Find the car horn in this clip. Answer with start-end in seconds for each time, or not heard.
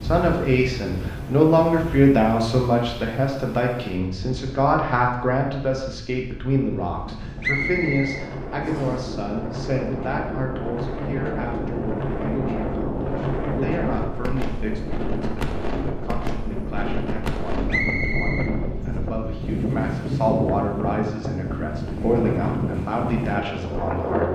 not heard.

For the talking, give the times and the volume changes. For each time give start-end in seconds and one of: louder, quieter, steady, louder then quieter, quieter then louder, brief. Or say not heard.
0.0-24.3 quieter then louder.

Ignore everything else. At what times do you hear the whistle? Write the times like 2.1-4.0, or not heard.
7.4-9.0, 17.7-19.0.